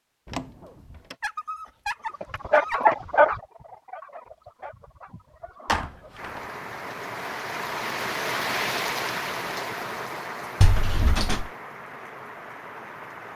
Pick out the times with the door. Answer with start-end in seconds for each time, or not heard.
0.2-1.1, 5.7-6.5, 10.6-11.5.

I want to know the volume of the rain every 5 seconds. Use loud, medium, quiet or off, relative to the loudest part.
off, loud, medium.